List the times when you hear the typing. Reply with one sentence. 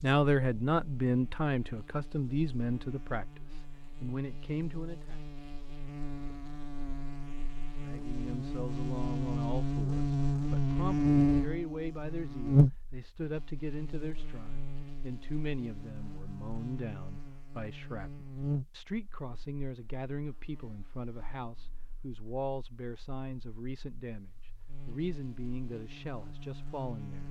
The typing can't be heard in this clip.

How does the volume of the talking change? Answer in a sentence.
The volume of the talking goes down.